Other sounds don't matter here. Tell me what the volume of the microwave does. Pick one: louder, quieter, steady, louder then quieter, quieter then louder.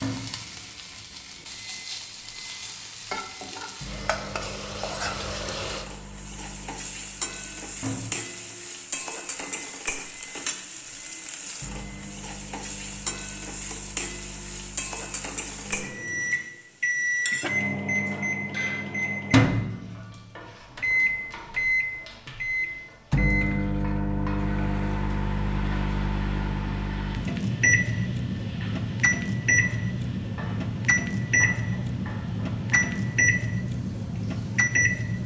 louder.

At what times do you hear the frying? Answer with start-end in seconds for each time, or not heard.
0.0-35.2.